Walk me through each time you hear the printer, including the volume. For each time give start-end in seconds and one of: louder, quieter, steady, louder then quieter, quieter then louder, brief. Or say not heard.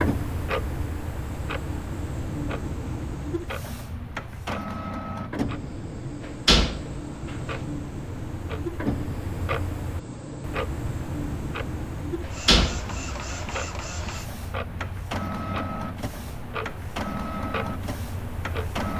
0.0-18.9 steady.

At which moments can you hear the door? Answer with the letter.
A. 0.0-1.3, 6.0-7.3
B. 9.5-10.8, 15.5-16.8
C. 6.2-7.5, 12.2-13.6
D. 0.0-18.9
C.